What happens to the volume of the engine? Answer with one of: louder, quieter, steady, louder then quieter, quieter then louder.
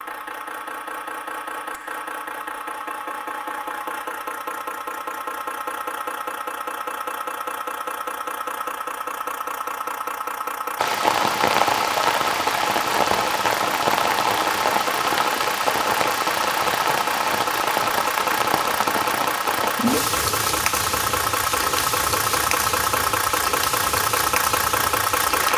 louder.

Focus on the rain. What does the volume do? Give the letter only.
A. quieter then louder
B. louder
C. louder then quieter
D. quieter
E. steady
D.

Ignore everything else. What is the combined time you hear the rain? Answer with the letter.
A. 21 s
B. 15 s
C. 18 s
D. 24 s
B.